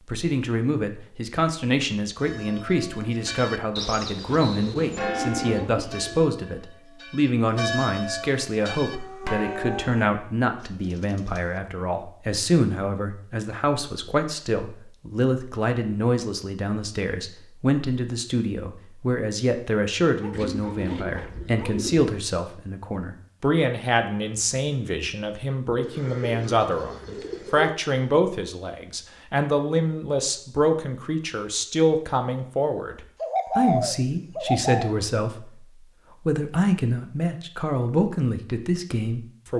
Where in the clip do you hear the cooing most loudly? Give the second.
34 s.